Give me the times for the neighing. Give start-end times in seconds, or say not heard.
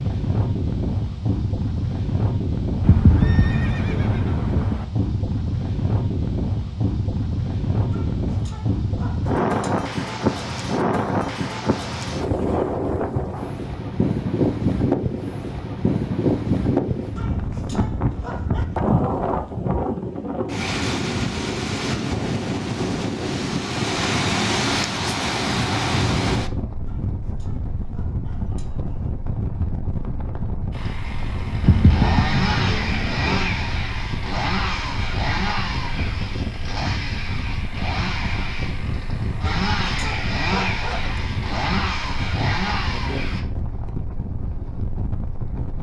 2.8-4.8, 31.6-33.2.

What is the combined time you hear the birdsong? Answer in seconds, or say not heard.
not heard.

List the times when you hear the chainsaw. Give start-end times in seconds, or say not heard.
30.7-43.5.